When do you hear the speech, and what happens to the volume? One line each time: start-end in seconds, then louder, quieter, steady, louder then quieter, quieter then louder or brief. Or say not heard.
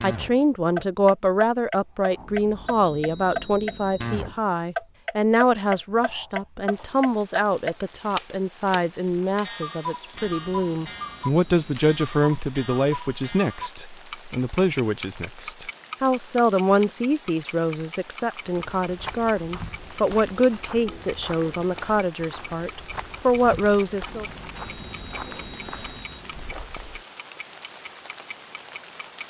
0.0-24.2 steady.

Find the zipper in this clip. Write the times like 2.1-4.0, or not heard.
not heard.